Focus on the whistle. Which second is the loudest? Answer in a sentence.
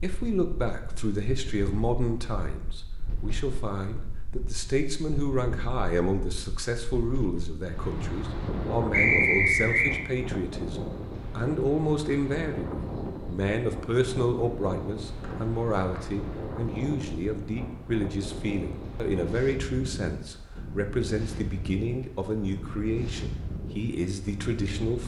The volume of the whistle peaks at 9 seconds.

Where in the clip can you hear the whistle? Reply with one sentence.
You can hear the whistle from 8.9 to 9.9 s and from 15.2 to 16.1 s.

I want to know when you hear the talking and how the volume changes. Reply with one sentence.
The talking can be heard from 0.0 to 25.0 s, at a steady volume.